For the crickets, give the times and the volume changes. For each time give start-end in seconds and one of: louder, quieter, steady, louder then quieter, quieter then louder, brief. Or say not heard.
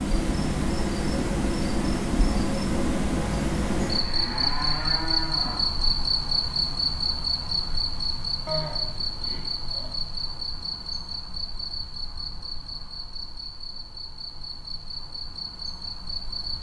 0.0-16.5 quieter.